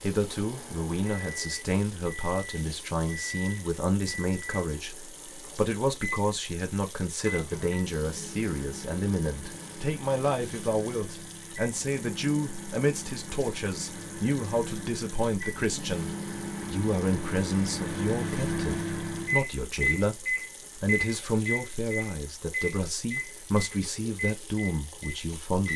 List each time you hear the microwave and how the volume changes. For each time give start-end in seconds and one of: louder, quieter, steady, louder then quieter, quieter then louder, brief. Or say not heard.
0.0-25.7 louder.